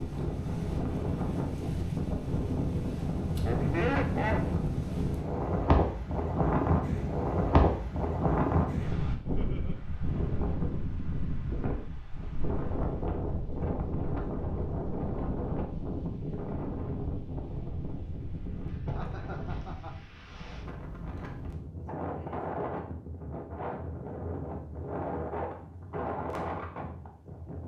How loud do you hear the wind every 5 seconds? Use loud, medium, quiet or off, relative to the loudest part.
loud, loud, medium, medium, medium, medium.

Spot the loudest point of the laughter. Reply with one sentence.
The volume of the laughter peaks at 4 seconds.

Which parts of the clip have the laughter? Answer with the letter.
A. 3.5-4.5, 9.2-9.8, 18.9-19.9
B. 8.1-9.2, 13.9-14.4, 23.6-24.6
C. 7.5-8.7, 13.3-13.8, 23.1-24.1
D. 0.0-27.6
A.